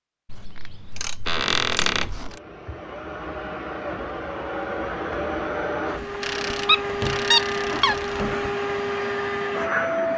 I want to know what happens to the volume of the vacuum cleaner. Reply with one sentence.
The volume of the vacuum cleaner goes up.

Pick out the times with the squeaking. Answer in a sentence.
You can hear the squeaking from 1.2 to 2.1 s and from 6.0 to 8.5 s.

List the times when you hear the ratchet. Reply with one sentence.
You can hear the ratchet from 0.2 to 2.4 s and from 6.2 to 8.2 s.